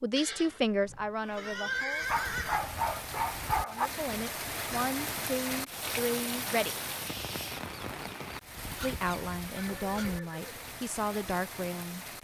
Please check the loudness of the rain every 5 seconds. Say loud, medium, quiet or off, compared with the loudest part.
loud, loud, medium.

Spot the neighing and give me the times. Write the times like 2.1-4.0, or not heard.
0.1-2.7, 9.6-10.7.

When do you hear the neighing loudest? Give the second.
2 s.